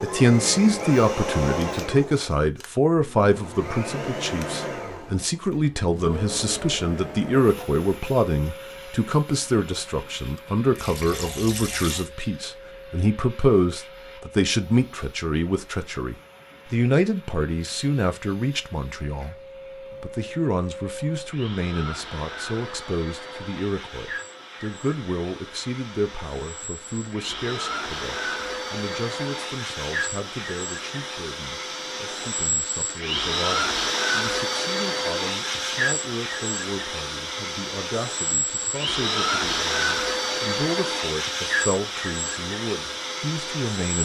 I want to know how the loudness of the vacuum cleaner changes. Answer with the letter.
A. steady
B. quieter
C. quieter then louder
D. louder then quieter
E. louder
C.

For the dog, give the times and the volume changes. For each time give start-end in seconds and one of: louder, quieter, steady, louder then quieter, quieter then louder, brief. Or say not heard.
not heard.